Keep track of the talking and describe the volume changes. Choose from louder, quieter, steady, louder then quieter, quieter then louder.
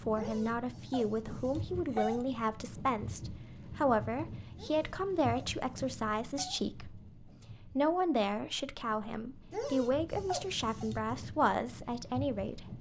steady.